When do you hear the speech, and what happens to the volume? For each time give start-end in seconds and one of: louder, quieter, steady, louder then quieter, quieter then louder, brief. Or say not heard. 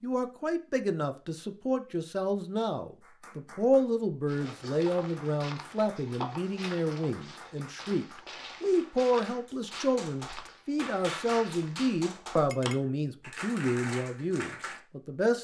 0.0-15.4 steady.